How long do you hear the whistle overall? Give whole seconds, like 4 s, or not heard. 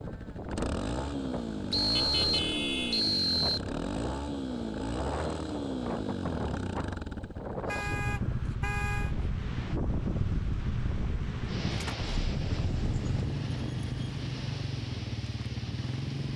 2 s.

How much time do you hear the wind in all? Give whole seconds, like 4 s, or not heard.
16 s.